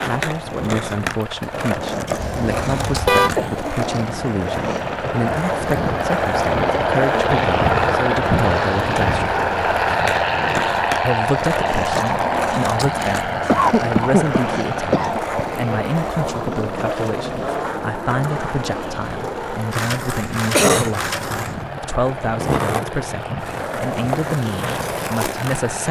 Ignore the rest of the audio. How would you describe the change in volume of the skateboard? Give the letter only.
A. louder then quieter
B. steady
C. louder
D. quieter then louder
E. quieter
B.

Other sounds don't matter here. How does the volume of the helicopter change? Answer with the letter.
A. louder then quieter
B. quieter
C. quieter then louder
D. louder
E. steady
A.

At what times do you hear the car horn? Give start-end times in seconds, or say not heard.
2.1-3.4.